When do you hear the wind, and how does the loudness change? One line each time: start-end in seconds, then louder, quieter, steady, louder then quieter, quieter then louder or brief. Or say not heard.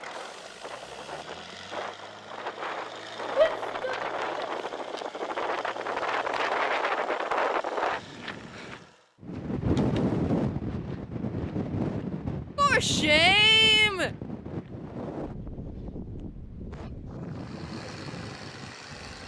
0.0-19.2 louder then quieter.